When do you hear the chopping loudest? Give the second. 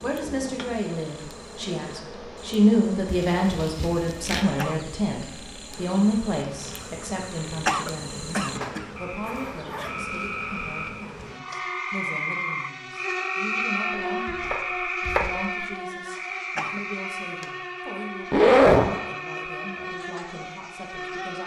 15 s.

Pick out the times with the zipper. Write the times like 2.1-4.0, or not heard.
3.1-4.5, 8.4-10.0, 18.3-18.9.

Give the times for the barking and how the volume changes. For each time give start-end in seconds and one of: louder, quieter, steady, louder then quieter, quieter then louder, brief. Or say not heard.
not heard.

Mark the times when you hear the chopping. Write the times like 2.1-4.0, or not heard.
13.9-15.7.